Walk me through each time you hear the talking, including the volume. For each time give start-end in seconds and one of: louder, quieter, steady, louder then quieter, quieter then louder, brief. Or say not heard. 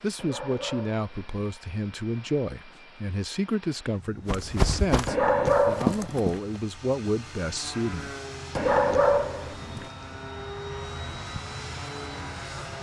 0.0-8.2 steady.